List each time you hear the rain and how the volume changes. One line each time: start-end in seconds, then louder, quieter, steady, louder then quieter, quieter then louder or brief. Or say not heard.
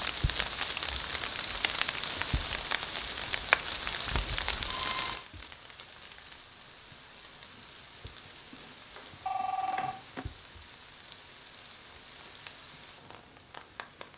0.0-14.1 quieter.